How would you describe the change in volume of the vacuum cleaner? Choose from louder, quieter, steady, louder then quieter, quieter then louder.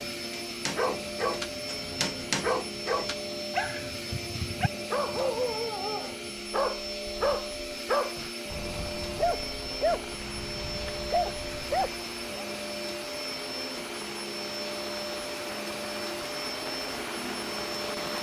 steady.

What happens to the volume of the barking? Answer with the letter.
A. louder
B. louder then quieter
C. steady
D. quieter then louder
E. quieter
C.